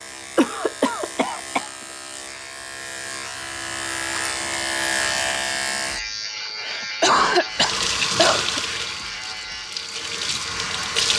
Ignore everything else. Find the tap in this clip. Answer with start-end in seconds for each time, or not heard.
7.5-11.1.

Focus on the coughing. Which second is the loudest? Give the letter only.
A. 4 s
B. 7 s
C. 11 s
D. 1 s
B.